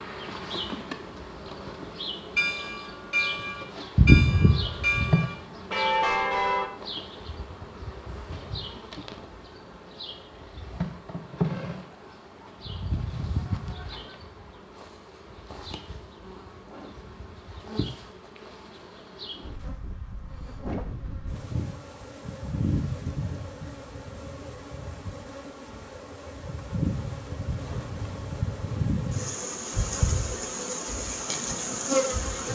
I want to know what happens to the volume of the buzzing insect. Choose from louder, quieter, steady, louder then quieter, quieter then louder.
quieter then louder.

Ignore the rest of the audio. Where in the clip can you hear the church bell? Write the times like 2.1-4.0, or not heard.
2.4-6.7.